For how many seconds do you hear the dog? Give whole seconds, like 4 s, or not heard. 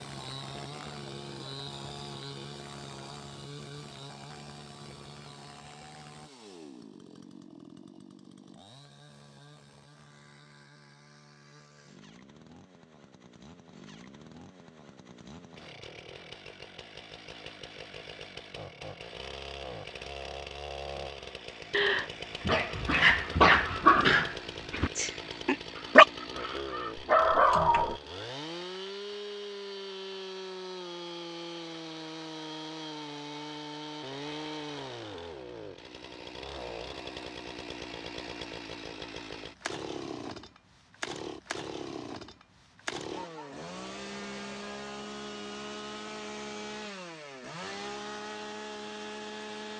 6 s.